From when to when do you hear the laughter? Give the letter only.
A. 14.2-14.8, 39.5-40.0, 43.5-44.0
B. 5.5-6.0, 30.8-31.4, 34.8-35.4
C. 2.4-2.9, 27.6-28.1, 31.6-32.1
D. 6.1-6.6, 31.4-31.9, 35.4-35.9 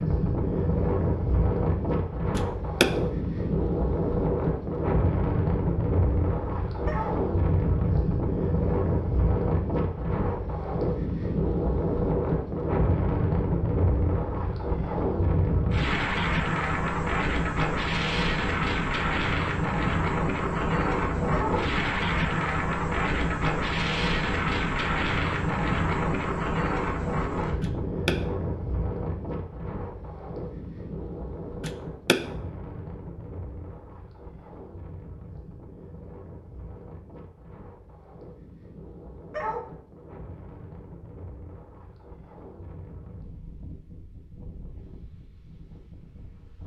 C.